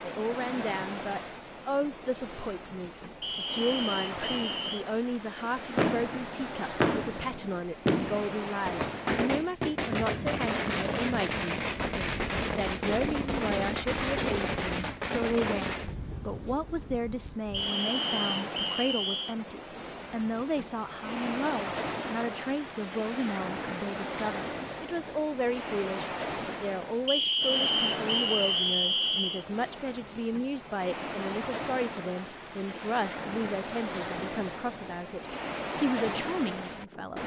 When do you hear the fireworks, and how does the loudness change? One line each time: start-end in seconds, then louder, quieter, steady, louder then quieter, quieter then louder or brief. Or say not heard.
5.8-15.9 steady.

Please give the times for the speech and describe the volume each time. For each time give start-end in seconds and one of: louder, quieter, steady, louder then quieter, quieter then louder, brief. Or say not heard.
0.0-37.2 steady.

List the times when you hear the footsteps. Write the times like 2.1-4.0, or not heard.
not heard.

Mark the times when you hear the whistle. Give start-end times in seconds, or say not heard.
3.2-4.8, 17.5-19.4, 27.1-29.4.